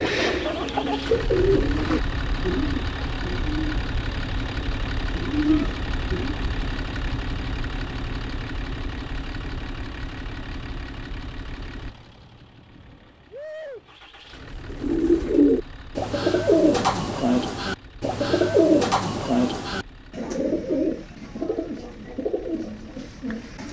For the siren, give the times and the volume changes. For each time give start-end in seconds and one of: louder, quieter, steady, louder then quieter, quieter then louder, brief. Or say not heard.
not heard.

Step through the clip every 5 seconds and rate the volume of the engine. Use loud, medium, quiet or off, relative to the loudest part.
loud, loud, medium, quiet, quiet.